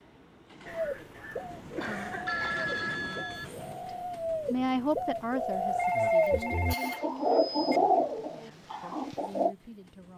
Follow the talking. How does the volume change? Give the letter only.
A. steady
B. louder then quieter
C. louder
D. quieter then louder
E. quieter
D.